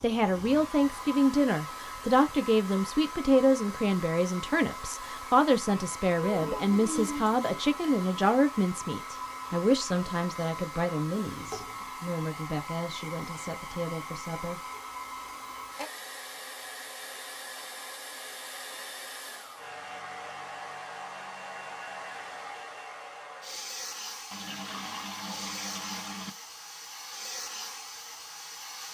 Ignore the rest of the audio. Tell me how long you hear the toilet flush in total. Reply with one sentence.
The toilet flush can be heard for 4 seconds in total.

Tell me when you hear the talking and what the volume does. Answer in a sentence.
The talking can be heard from 0.0 to 14.6 s, getting quieter.